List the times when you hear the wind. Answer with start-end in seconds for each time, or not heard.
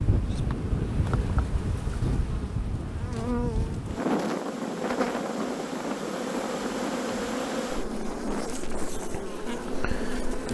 0.0-10.4.